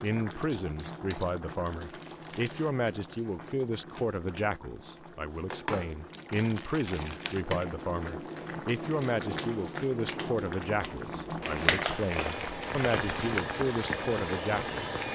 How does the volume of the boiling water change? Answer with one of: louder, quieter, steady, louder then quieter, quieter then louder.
louder.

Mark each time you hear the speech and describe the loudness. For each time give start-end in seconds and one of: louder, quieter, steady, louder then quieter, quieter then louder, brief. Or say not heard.
0.0-14.9 steady.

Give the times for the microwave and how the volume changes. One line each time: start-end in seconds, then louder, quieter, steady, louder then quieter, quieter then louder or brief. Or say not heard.
not heard.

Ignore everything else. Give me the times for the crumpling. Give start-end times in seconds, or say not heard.
1.7-2.7, 6.1-7.4, 11.4-13.4.